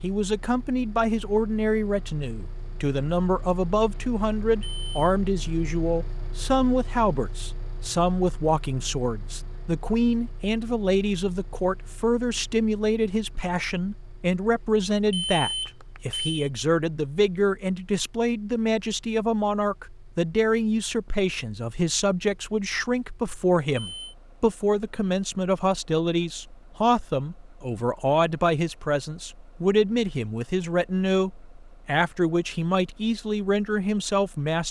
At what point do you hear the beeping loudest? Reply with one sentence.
The loudest moment of the beeping is at 15 seconds.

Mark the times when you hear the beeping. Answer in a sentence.
The beeping can be heard from 4.4 to 5.1 s, from 14.9 to 16.4 s and from 23.7 to 24.1 s.